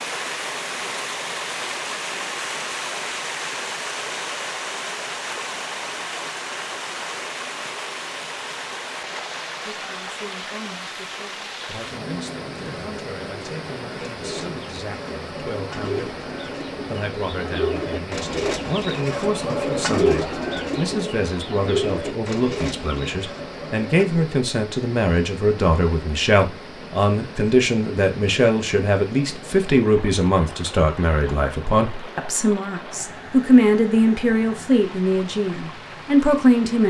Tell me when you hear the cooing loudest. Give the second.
20 s.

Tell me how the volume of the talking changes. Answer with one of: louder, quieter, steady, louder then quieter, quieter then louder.
louder.